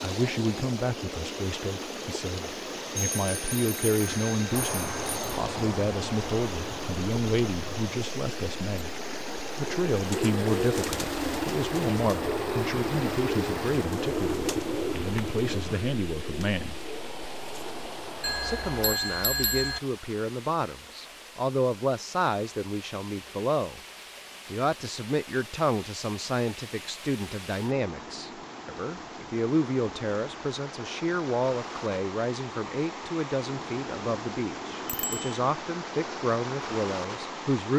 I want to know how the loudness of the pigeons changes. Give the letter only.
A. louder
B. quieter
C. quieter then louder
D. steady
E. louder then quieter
B.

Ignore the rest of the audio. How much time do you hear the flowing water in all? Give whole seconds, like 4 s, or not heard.
38 s.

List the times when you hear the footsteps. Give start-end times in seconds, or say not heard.
not heard.